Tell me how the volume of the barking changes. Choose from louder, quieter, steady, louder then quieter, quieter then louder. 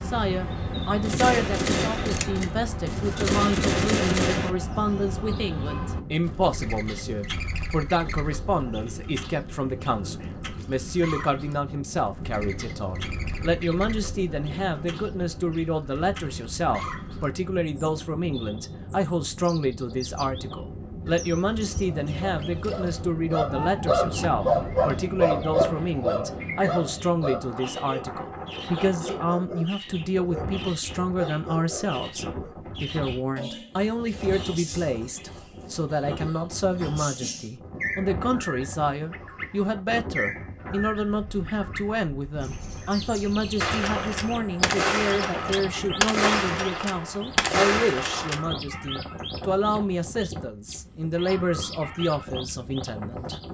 quieter.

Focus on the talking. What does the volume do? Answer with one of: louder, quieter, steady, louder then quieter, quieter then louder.
steady.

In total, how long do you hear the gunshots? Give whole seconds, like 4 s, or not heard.
9 s.